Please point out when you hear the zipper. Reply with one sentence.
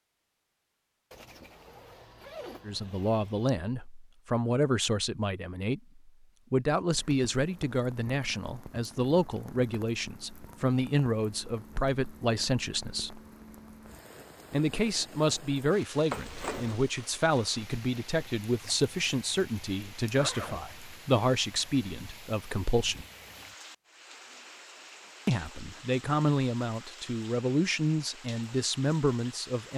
The zipper can be heard from 1.1 to 3.5 s, from 16.1 to 16.8 s and from 20.1 to 20.6 s.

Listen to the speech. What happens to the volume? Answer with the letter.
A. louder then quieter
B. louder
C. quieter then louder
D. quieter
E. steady
E.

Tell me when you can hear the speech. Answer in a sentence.
You can hear the speech from 2.6 to 13.2 s, from 14.5 to 23.1 s and from 25.2 to 29.7 s.